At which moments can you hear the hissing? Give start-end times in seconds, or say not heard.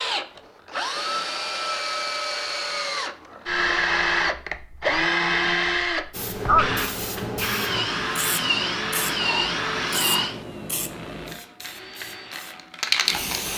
6.1-13.5.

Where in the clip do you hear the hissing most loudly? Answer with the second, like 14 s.
13 s.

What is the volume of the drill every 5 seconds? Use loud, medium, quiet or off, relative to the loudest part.
loud, loud, medium.